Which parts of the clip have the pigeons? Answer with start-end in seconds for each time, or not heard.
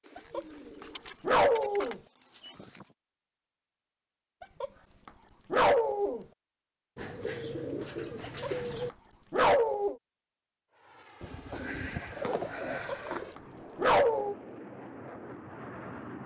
0.0-3.0, 7.0-8.9, 11.2-13.3.